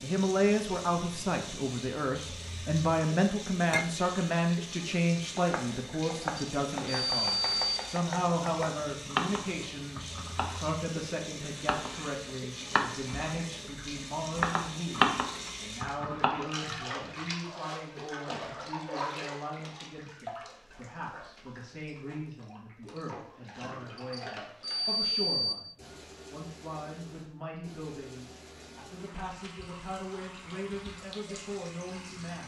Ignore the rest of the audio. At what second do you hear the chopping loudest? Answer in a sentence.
The loudest moment of the chopping is at 15 seconds.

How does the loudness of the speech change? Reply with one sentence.
The volume of the speech goes down.